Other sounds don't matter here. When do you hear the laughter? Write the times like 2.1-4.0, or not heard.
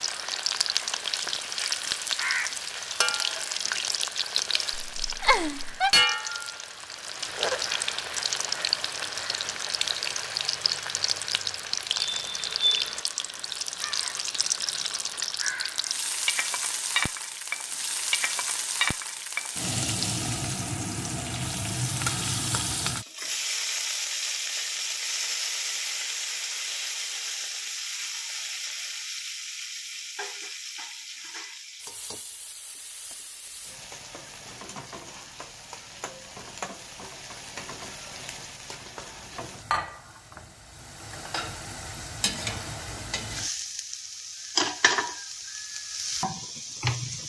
4.7-6.0.